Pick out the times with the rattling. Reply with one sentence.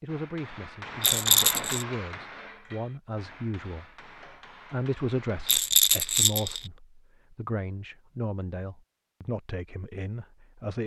The rattling can be heard from 1.0 to 1.9 s and from 5.5 to 6.7 s.